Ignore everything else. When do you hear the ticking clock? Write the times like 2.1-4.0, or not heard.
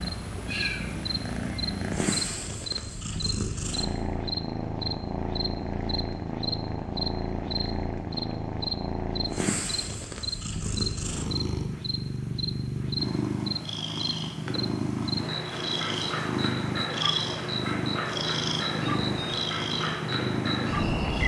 not heard.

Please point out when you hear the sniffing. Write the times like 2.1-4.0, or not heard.
not heard.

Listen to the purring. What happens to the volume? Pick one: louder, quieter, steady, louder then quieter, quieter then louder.
steady.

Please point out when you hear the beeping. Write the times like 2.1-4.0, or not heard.
18.9-19.6.